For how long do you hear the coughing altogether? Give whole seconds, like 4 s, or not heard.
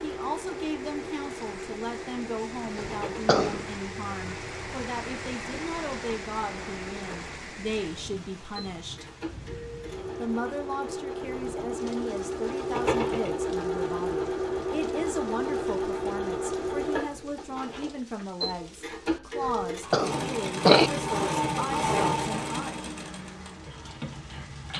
2 s.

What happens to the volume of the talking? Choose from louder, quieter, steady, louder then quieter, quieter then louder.
steady.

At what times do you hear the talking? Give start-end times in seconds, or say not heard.
0.0-9.1, 10.2-22.9.